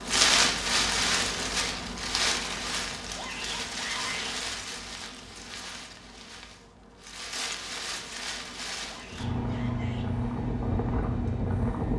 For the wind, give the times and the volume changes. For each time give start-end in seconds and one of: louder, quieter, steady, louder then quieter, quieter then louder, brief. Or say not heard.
0.0-11.9 quieter then louder.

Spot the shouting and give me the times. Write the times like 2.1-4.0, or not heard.
3.1-4.3, 8.8-10.1.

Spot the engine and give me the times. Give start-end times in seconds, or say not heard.
9.2-11.9.